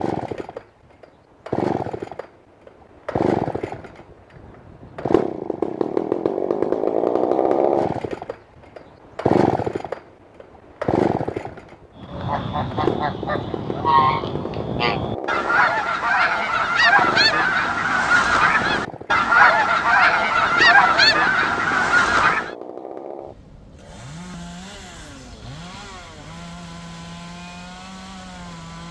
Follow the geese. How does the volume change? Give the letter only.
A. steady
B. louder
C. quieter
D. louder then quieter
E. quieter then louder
B.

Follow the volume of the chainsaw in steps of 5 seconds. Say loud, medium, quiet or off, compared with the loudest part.
medium, loud, medium, medium, quiet, quiet.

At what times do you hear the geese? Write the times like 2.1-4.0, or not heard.
11.9-22.5.